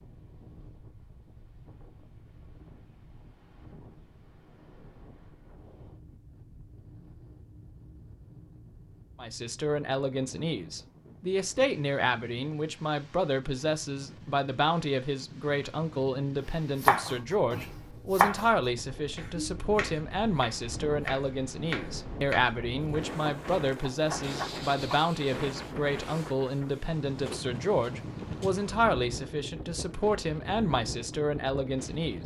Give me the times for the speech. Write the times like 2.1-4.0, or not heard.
9.2-32.2.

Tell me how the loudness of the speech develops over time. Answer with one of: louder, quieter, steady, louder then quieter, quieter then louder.
steady.